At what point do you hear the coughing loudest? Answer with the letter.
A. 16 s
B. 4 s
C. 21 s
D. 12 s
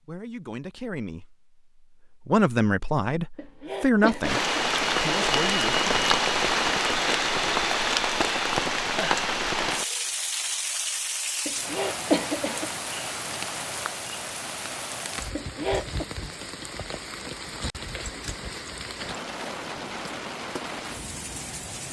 D.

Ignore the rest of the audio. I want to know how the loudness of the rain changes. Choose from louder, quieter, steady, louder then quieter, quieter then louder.
quieter.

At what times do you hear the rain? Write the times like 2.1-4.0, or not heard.
4.2-21.8.